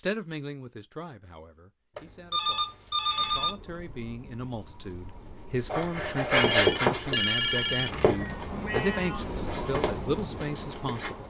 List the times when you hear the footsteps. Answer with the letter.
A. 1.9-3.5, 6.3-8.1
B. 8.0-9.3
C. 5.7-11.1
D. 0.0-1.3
C.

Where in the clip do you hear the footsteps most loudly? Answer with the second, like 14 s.
7 s.